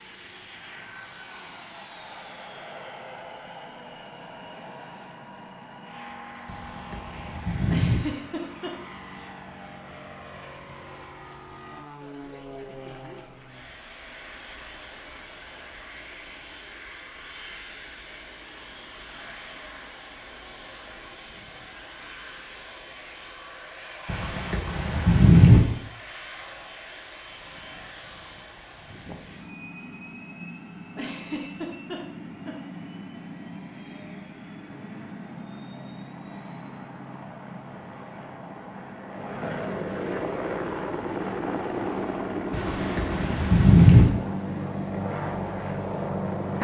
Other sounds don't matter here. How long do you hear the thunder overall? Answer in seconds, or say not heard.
5 s.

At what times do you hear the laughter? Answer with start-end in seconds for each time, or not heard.
7.7-8.7, 30.9-32.5.